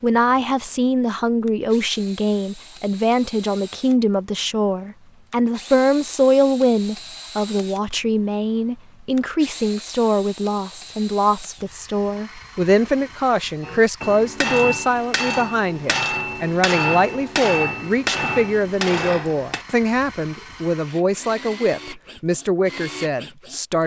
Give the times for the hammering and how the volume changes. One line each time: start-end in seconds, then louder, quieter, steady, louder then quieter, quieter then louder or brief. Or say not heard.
13.6-19.6 steady.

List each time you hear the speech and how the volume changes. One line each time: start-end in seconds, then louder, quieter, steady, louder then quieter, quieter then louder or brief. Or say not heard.
0.0-23.8 steady.